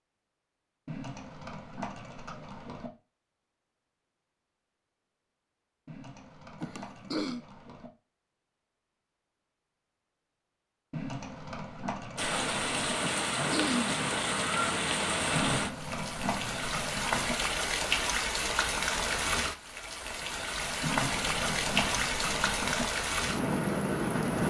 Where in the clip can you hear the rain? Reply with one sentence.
You can hear the rain from 12.2 to 24.4 s.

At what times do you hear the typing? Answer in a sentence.
You can hear the typing from 0.8 to 2.9 s, from 5.8 to 7.9 s, from 10.9 to 12.9 s, from 15.3 to 17.4 s and from 20.8 to 22.9 s.